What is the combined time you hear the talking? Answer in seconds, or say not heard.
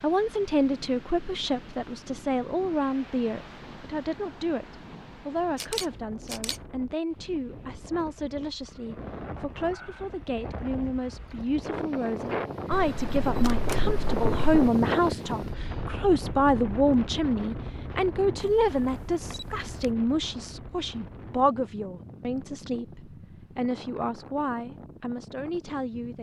26 s.